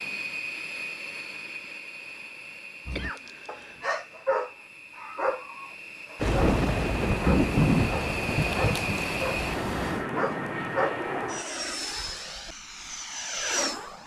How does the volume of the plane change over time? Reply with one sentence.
The loudness of the plane goes down, then up.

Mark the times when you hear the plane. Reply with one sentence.
You can hear the plane from 0.0 to 14.0 s.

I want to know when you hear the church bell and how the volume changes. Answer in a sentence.
The church bell can't be heard in this clip.